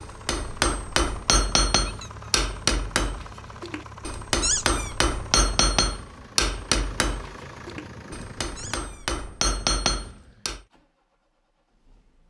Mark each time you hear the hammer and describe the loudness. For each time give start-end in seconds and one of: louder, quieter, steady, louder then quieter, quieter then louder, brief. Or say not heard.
0.0-10.6 steady.